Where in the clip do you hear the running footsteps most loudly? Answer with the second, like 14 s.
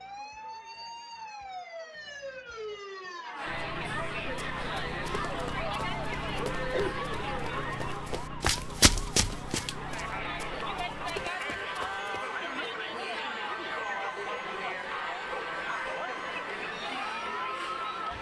9 s.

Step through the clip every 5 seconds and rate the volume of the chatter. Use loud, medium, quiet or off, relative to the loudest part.
medium, loud, loud, loud.